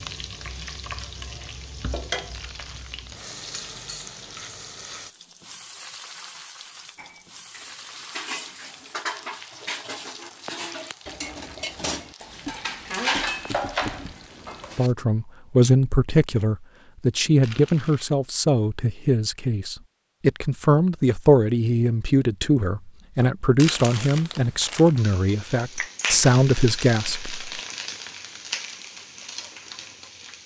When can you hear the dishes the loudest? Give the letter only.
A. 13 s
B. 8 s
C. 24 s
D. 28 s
A.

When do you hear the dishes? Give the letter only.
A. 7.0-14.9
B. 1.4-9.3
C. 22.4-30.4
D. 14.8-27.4
A.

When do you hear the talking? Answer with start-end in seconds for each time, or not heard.
14.8-27.4.